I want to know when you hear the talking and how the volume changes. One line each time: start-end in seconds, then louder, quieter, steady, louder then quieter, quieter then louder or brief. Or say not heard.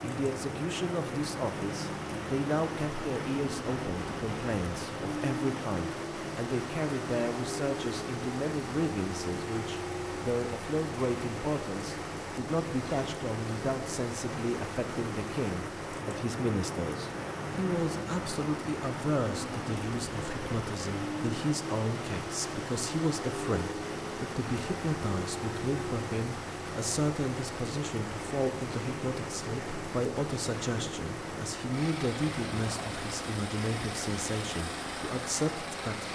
0.0-36.0 steady.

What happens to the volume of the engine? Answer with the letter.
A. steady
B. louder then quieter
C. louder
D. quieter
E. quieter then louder
A.